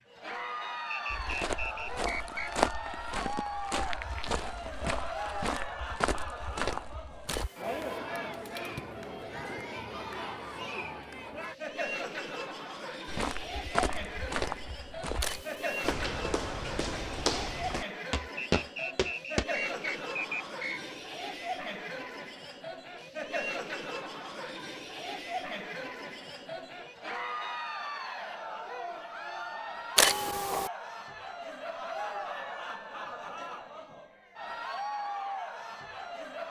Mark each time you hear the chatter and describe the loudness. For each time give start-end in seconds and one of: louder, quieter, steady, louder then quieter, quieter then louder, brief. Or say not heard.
0.1-36.4 steady.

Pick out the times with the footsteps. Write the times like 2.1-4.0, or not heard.
1.1-7.5, 13.1-19.4.